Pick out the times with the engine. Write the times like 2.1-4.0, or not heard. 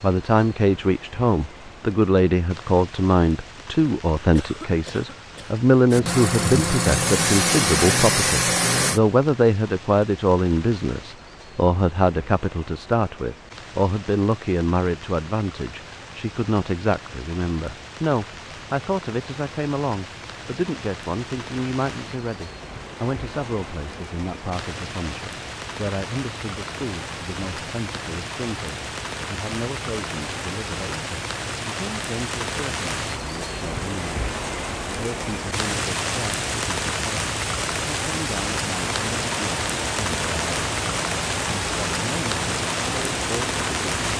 5.9-9.0, 38.6-44.1.